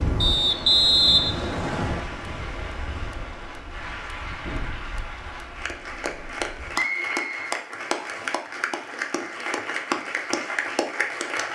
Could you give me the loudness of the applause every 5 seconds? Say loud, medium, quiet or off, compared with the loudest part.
medium, loud, loud.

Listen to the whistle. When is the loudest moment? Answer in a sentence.
The loudest moment of the whistle is at 1 second.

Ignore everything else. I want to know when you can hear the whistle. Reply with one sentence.
The whistle can be heard from 0.2 to 2.0 s and from 6.8 to 8.3 s.